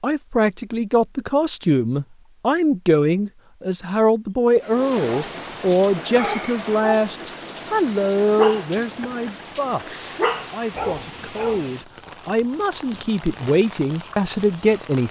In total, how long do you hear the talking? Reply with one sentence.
You can hear the talking for 15 seconds altogether.